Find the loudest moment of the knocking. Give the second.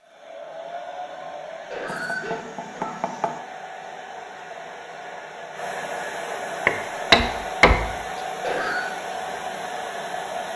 7 s.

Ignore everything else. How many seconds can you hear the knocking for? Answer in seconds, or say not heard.
3 s.